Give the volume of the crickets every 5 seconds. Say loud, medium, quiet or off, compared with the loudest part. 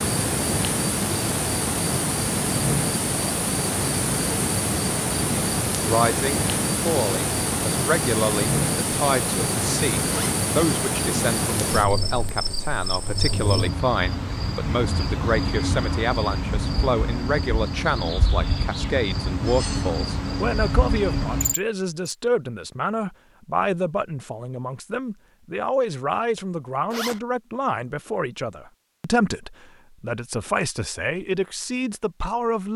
loud, loud, loud, loud, loud, off, off.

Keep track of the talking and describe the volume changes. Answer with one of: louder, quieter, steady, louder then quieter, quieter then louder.
steady.